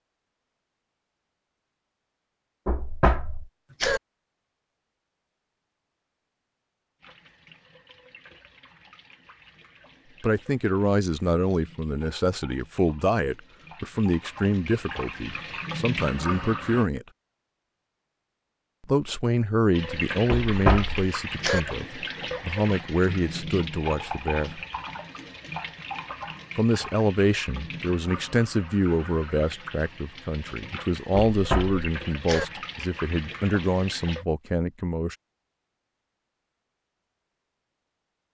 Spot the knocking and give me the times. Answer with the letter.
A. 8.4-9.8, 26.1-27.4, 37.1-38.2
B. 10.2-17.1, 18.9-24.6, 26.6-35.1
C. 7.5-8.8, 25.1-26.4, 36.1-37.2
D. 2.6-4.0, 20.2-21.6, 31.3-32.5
D.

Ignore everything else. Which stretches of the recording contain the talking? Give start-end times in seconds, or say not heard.
10.2-17.1, 18.9-24.6, 26.6-35.1.